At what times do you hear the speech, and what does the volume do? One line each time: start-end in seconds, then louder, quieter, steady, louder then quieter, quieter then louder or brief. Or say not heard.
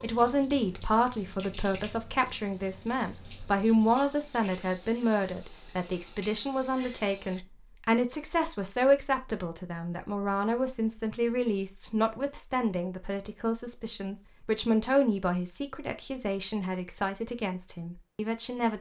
0.0-18.7 steady.